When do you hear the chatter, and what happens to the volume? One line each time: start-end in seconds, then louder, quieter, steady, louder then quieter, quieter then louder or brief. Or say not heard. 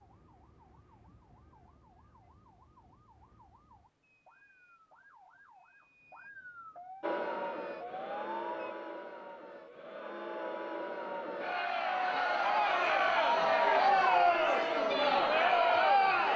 7.0-16.3 louder.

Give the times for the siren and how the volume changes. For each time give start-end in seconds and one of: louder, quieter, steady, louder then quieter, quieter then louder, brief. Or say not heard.
0.0-8.8 louder.